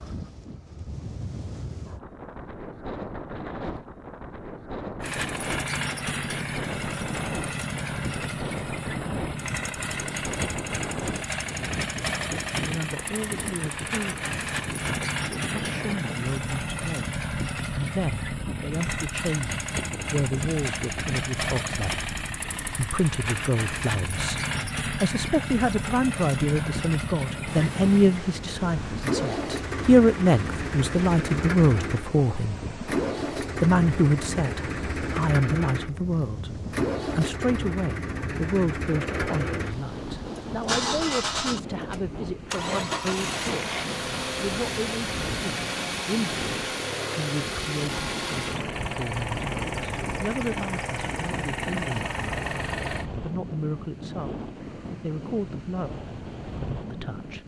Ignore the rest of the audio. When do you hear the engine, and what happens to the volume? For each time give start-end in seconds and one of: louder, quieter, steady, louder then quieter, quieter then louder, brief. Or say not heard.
5.0-53.1 steady.